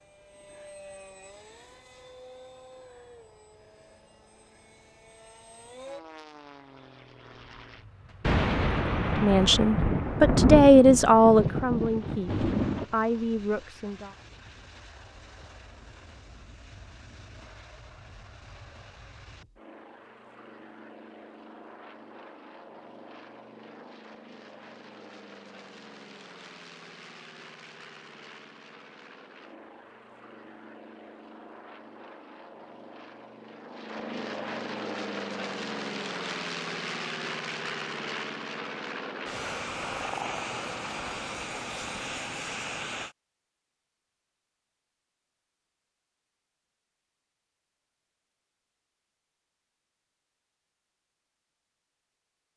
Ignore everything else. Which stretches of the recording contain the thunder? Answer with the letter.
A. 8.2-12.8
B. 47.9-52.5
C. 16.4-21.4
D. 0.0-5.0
A.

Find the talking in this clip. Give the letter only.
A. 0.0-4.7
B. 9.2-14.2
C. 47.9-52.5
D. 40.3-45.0
B.